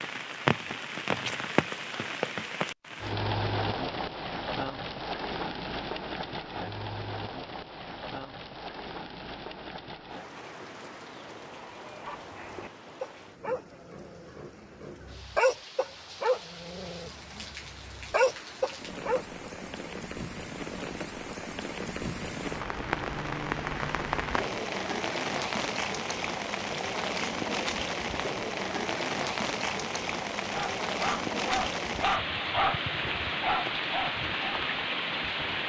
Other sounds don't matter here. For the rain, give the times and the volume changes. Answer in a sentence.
The rain can be heard from 0.0 to 35.6 s, getting quieter then louder.